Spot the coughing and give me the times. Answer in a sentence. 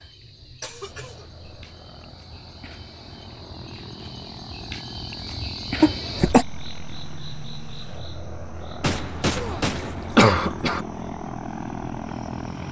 The coughing can be heard from 0.6 to 1.4 s, from 5.8 to 6.5 s and from 8.8 to 10.8 s.